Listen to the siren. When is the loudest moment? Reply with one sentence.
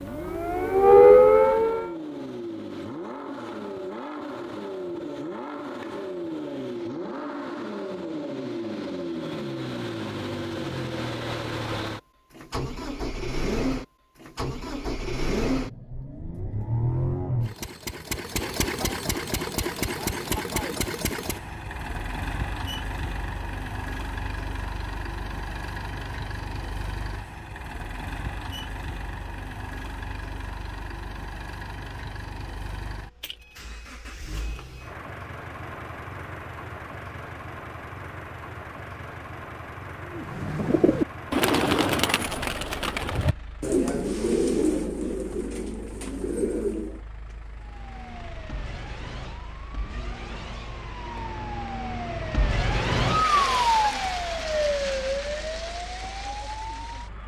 The volume of the siren peaks at 1 second.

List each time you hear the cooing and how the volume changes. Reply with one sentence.
You can hear the cooing from 40.0 to 47.0 s, getting quieter.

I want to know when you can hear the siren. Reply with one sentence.
The siren can be heard from 0.1 to 1.9 s and from 47.6 to 57.2 s.